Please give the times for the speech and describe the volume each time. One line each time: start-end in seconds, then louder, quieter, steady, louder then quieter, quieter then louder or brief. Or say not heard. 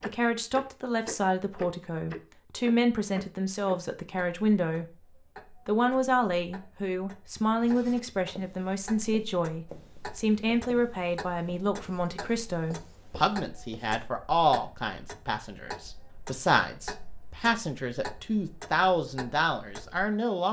0.0-20.4 steady.